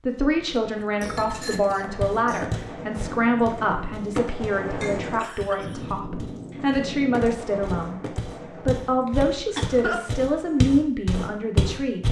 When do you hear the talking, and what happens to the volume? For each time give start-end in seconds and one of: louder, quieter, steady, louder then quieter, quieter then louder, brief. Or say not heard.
0.1-12.0 steady.